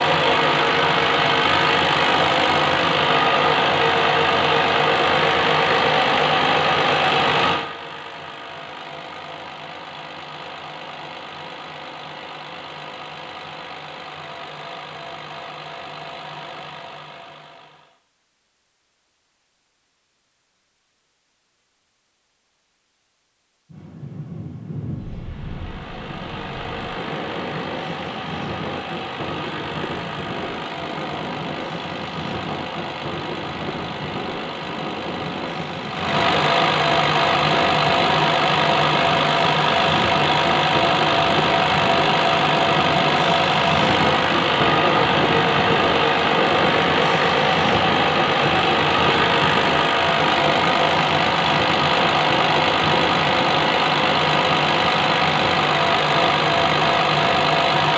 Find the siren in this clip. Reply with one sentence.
You can't hear the siren here.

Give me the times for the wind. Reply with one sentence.
The wind can be heard from 23.7 to 57.9 s.